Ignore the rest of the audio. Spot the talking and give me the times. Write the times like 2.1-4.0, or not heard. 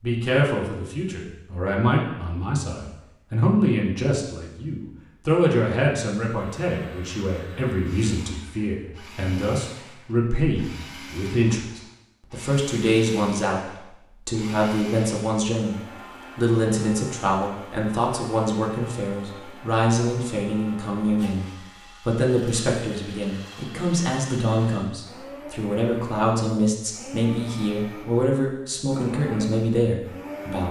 0.0-15.8, 16.4-30.6.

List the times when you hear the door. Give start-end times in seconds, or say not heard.
not heard.